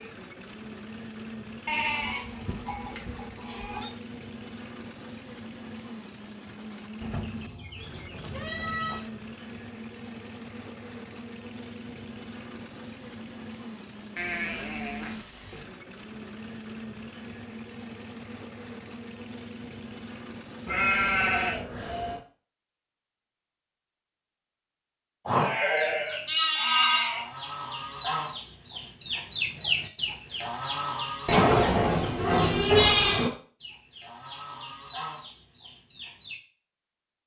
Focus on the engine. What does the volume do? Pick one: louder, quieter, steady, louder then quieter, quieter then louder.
steady.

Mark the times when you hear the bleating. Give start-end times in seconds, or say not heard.
1.6-3.9, 7.0-9.0, 14.2-15.7, 20.6-22.2, 25.2-27.2, 31.2-33.3.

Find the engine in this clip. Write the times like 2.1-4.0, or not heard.
0.0-21.4.